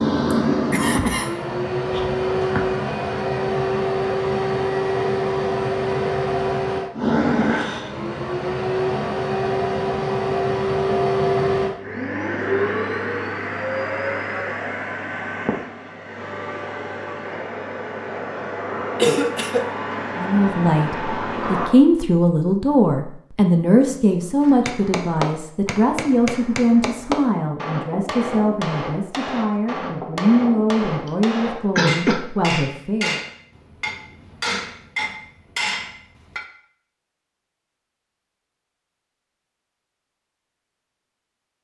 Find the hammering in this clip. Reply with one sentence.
The hammering can be heard from 24.4 to 36.5 s.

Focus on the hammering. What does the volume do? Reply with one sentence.
The volume of the hammering stays about the same.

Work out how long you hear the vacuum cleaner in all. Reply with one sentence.
You can hear the vacuum cleaner for 22 seconds altogether.